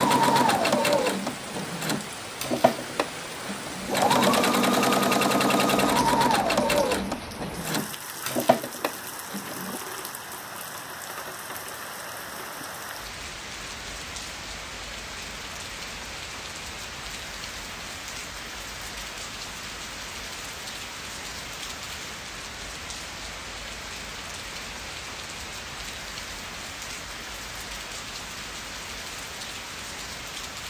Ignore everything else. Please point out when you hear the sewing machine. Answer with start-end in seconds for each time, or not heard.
0.0-9.8.